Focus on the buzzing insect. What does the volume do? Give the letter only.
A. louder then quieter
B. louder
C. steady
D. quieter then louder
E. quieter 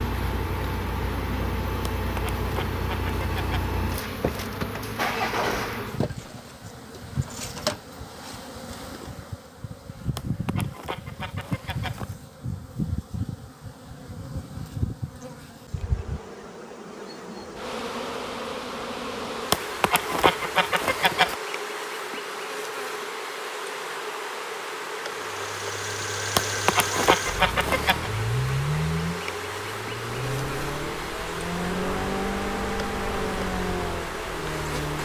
C.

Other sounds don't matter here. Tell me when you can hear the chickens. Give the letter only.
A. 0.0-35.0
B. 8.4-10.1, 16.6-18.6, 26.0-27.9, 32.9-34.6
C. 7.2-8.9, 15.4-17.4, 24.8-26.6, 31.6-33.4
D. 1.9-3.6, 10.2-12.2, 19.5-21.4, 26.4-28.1
D.